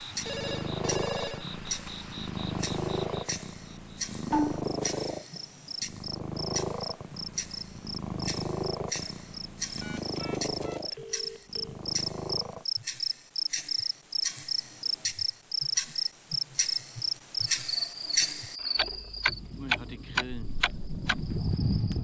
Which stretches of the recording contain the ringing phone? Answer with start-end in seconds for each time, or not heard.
0.2-1.9, 9.8-11.8, 18.6-19.2.